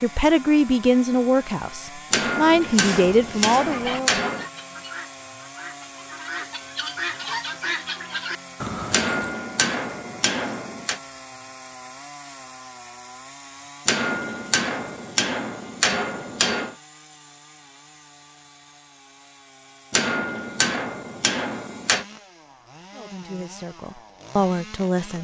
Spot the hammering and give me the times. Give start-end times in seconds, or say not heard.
2.1-4.5, 8.9-11.0, 13.8-16.8, 19.9-22.1.